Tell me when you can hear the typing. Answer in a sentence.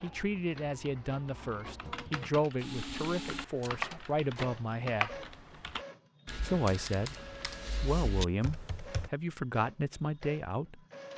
You can hear the typing from 0.8 to 9.1 s.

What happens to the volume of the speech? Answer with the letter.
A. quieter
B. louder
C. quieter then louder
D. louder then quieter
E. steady
E.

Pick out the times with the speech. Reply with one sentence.
The speech can be heard from 0.0 to 5.2 s and from 6.4 to 11.1 s.